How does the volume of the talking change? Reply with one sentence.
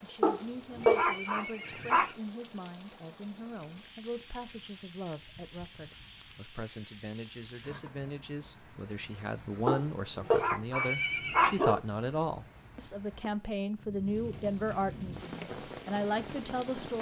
The volume of the talking goes up.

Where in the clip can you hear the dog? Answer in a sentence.
You can hear the dog from 0.2 to 2.1 s and from 9.7 to 11.8 s.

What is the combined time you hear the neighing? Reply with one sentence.
You can hear the neighing for 2 seconds altogether.